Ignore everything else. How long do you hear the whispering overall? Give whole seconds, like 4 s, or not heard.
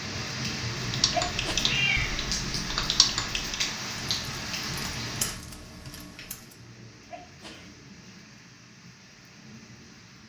not heard.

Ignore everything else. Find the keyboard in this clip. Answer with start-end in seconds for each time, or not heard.
0.8-6.5.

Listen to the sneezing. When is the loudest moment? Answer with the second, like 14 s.
1 s.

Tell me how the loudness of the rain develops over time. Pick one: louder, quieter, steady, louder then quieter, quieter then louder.
quieter.